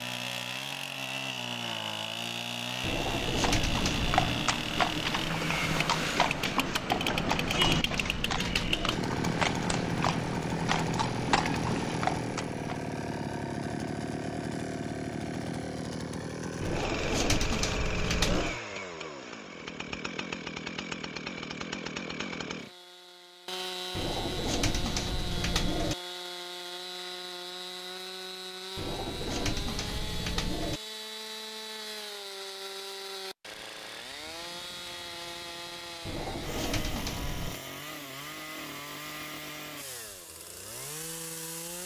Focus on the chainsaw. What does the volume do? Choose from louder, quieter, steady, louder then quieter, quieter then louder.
quieter.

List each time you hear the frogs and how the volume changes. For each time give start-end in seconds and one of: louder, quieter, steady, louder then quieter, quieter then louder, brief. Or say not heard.
not heard.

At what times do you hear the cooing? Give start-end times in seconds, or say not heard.
2.8-4.2, 7.2-8.9, 16.6-18.6, 23.9-25.9, 28.8-30.8, 36.0-37.6.